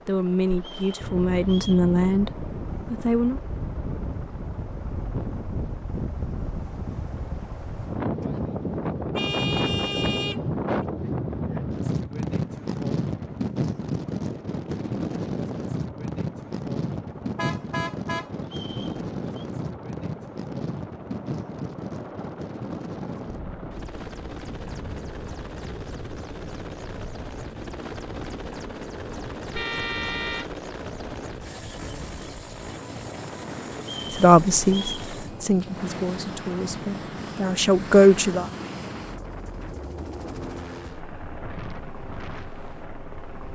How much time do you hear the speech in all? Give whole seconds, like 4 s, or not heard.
8 s.